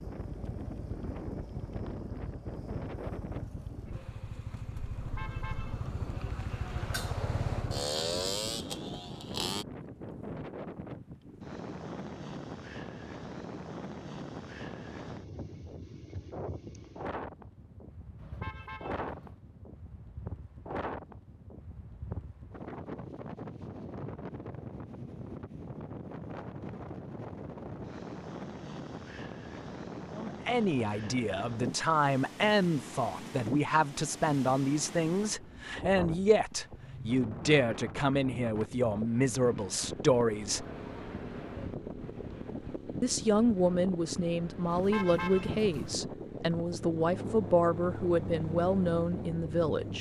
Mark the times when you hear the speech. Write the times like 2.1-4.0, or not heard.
30.1-40.6, 43.0-49.9.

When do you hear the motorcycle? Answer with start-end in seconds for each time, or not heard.
0.0-9.7, 39.9-49.9.